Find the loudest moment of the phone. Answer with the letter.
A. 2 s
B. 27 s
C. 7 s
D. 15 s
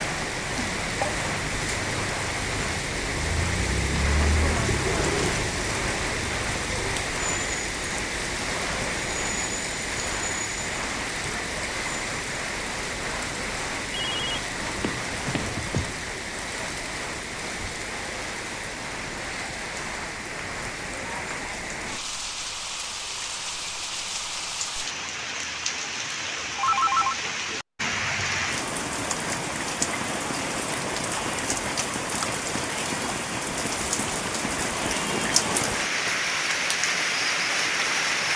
B.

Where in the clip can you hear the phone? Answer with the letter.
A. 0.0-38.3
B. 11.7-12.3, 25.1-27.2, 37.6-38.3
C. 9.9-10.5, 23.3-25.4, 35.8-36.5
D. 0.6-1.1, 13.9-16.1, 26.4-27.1
D.